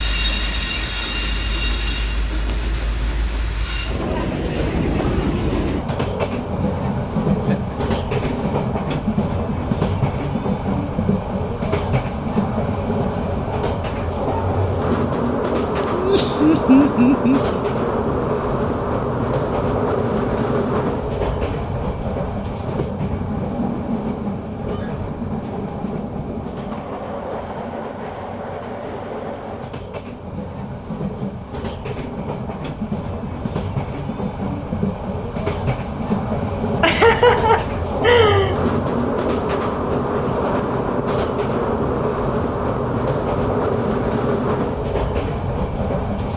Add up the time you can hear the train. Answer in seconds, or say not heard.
46 s.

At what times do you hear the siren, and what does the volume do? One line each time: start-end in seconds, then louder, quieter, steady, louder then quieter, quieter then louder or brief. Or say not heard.
not heard.